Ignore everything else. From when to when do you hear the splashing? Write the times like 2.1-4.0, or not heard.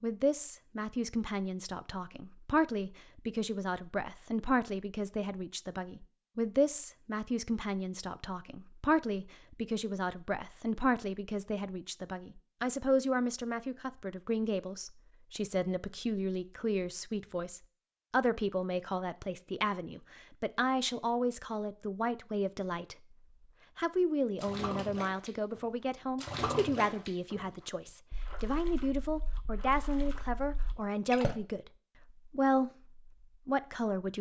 24.4-31.4.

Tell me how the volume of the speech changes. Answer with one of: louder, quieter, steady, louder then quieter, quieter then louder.
steady.